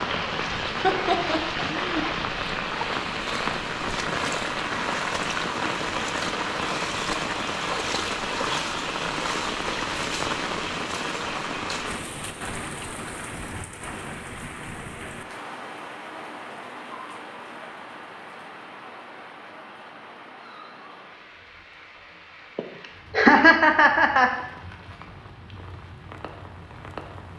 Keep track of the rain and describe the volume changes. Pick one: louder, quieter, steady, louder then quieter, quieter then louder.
quieter.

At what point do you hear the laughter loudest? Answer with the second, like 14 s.
23 s.